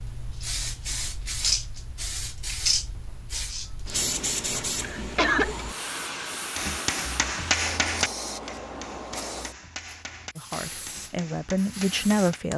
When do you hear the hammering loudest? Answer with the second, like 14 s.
8 s.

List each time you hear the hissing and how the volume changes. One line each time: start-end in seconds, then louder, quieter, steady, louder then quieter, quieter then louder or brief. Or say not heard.
0.0-12.5 quieter.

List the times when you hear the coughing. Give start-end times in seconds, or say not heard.
4.8-5.7.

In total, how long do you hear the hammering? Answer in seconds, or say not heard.
6 s.